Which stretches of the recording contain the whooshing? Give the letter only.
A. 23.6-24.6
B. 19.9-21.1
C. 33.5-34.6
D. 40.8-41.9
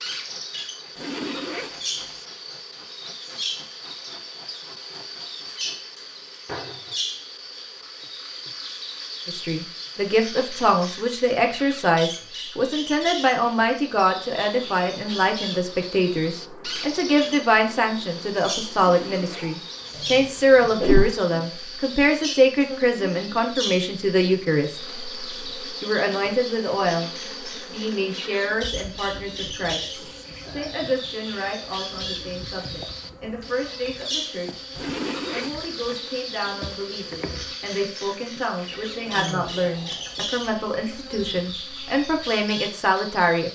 B.